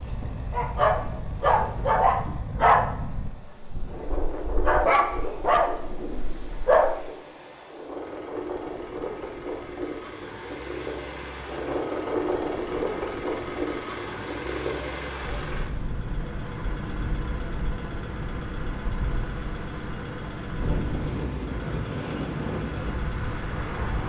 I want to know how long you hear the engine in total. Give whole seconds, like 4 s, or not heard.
24 s.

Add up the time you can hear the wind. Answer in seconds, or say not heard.
24 s.